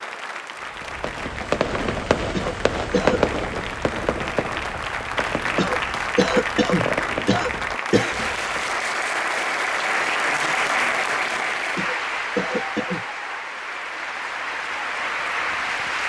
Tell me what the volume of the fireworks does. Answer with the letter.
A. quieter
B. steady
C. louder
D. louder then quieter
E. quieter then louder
A.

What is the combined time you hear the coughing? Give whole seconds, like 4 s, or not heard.
5 s.